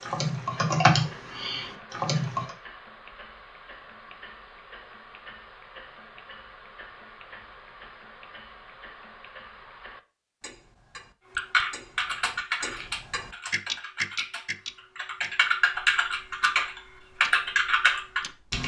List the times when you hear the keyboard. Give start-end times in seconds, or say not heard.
0.0-2.5, 11.3-18.6.